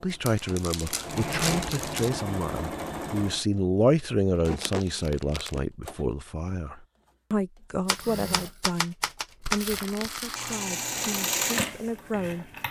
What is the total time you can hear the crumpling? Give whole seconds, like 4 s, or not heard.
4 s.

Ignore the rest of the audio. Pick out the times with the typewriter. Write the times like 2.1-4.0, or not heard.
7.8-9.7.